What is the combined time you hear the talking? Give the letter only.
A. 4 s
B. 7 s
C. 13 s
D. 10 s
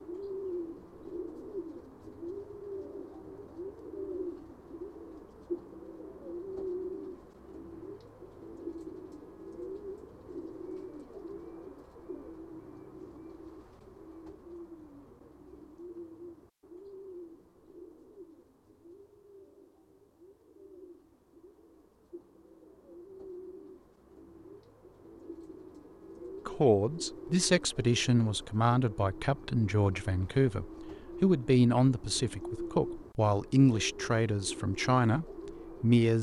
D.